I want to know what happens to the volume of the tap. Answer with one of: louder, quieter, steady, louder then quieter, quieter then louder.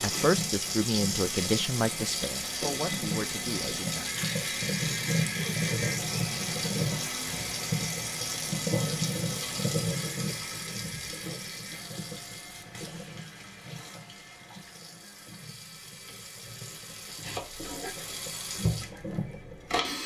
quieter then louder.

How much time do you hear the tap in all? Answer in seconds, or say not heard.
20 s.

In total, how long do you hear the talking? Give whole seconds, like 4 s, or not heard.
4 s.